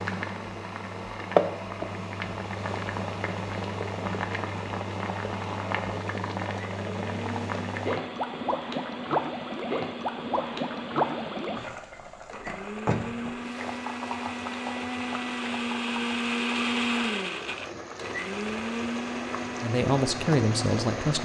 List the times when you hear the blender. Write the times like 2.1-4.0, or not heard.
0.1-21.1.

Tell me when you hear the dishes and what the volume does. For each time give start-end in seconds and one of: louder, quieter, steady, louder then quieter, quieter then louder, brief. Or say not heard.
not heard.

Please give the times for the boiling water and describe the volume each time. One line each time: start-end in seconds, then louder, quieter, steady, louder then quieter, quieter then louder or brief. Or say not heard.
0.0-21.1 quieter.